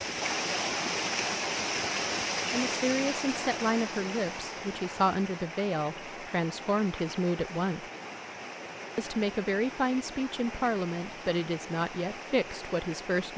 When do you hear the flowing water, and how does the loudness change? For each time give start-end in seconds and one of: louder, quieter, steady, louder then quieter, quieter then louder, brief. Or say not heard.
0.0-13.3 quieter.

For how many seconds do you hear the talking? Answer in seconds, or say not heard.
10 s.